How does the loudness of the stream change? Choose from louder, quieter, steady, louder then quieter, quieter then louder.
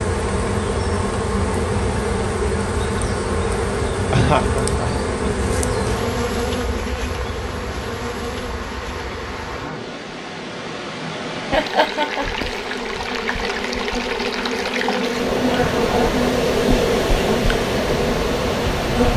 louder.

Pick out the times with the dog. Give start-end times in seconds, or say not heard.
not heard.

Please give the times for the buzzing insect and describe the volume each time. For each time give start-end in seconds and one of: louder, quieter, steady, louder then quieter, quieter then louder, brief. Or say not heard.
0.0-19.1 quieter then louder.